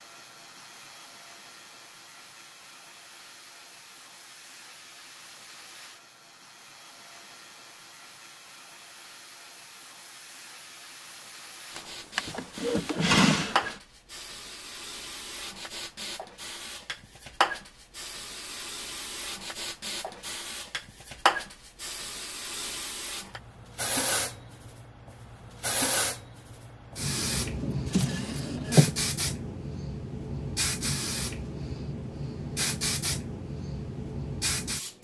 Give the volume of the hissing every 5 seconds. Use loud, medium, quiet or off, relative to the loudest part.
quiet, quiet, medium, loud, loud, loud, loud.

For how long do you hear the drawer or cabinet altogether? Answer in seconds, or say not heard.
3 s.